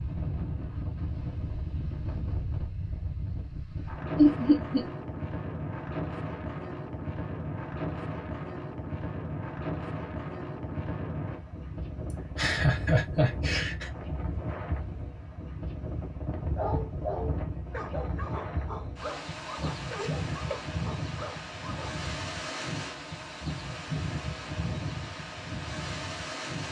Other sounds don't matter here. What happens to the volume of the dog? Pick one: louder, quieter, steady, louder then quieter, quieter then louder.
quieter.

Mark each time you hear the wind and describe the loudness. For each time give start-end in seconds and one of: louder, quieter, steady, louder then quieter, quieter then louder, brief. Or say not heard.
0.0-26.6 steady.